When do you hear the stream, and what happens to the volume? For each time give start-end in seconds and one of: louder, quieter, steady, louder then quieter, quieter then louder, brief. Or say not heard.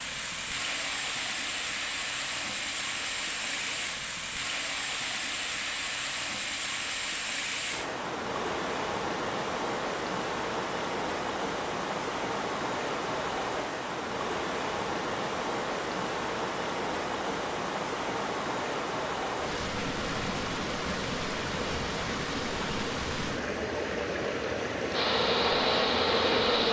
0.0-26.6 steady.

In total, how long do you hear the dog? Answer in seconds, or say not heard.
not heard.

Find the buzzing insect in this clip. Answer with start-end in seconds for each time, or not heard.
24.9-26.6.